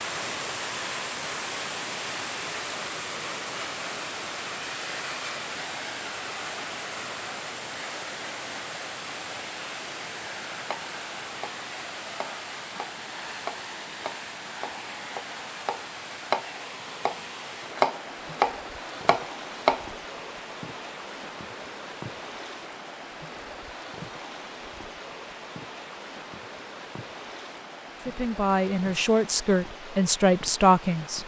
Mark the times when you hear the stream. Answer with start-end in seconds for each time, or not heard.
0.0-31.2.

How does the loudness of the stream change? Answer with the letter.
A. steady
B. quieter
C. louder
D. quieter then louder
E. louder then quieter
B.